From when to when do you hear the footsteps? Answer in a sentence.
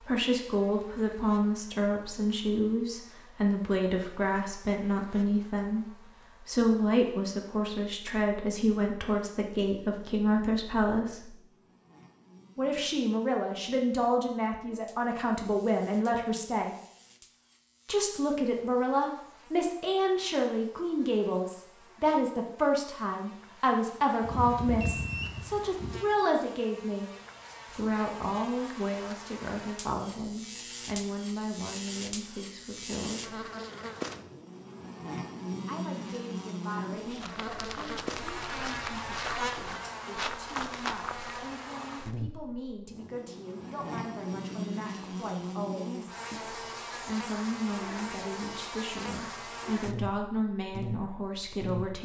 The footsteps can be heard from 37.0 to 41.4 s.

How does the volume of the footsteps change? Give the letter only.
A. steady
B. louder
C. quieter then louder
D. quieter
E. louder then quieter
B.